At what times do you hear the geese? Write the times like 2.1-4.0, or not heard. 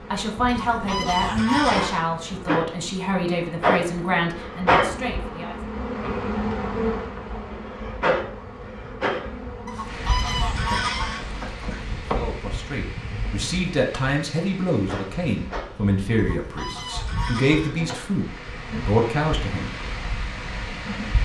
0.5-2.0, 9.7-11.9, 16.1-17.8.